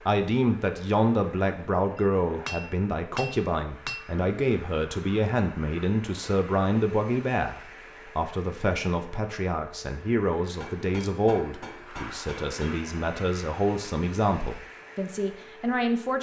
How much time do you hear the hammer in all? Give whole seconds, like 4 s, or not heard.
4 s.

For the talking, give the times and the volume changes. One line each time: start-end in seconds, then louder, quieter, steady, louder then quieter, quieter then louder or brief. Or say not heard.
0.1-16.1 steady.